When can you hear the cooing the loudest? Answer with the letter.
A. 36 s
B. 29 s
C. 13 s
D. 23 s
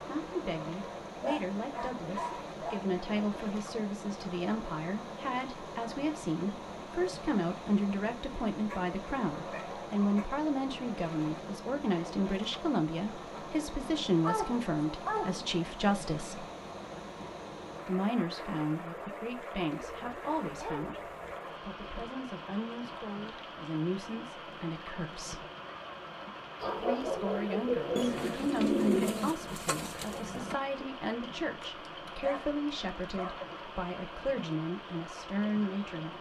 B.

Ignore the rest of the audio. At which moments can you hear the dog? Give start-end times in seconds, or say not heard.
1.2-2.9, 8.7-10.2, 14.2-15.4, 19.8-21.4, 26.6-28.1, 31.6-33.5.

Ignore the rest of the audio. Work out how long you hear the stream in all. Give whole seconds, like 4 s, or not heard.
36 s.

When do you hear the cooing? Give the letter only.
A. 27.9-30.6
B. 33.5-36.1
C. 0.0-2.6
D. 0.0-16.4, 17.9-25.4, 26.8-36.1
A.